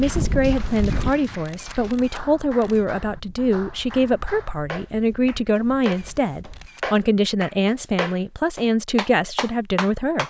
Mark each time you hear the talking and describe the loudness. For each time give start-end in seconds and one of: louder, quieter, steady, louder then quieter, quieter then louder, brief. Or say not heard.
0.0-10.2 steady.